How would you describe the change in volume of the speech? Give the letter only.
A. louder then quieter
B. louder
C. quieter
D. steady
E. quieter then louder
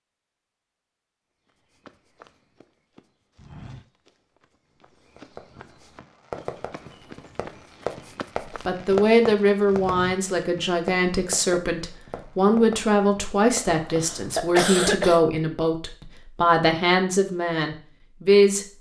D.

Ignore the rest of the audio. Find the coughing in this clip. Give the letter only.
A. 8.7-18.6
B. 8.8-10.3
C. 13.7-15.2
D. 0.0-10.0
C.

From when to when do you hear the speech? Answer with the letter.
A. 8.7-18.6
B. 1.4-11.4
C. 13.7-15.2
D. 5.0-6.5
A.